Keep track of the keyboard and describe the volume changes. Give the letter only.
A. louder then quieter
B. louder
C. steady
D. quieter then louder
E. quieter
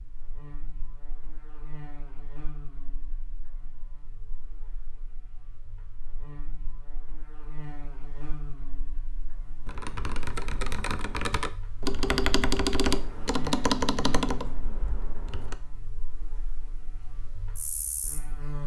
A.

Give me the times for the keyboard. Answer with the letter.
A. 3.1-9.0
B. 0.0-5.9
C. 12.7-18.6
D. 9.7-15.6
D.